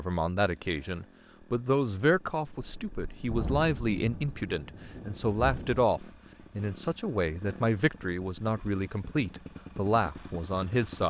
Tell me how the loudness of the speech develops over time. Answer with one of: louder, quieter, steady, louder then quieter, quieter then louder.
steady.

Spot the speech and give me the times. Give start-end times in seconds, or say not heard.
0.0-11.0.